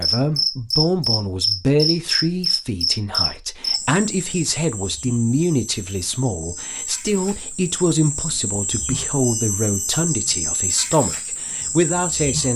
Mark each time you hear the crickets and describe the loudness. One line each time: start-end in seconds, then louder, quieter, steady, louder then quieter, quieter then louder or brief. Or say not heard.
0.0-12.5 quieter then louder.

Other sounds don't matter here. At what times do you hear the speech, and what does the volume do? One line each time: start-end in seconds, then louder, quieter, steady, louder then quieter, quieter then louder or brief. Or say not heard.
0.0-12.5 steady.